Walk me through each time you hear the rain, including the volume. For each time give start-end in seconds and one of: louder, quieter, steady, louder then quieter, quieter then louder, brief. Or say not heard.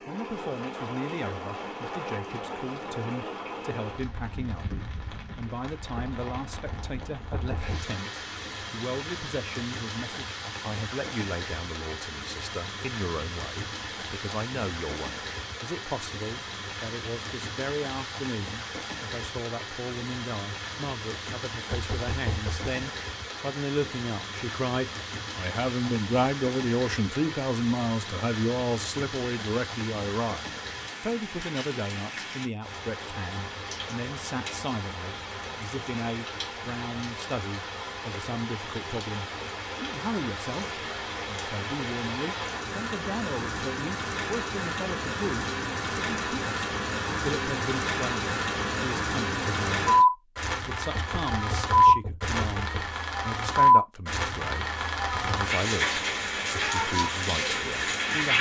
0.0-58.3 louder.